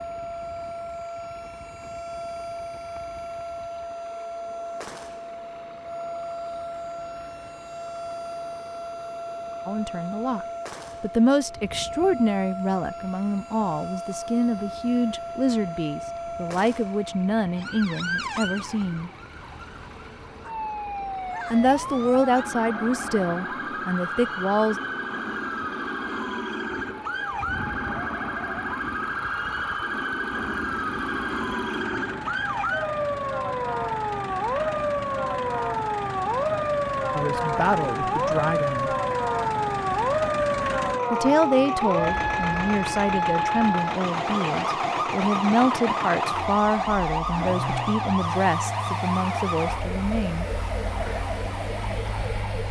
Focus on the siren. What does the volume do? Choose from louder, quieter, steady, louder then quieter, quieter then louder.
louder.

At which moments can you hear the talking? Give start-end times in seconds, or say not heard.
9.7-19.1, 21.5-24.8, 37.1-38.9, 41.1-50.5.